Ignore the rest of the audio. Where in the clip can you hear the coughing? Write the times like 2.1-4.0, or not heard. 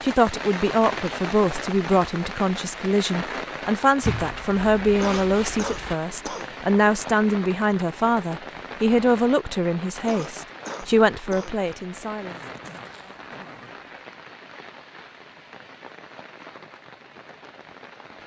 5.0-6.5, 10.1-11.6.